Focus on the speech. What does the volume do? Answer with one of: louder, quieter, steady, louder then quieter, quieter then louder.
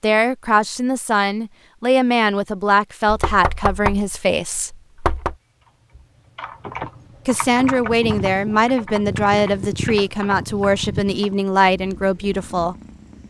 steady.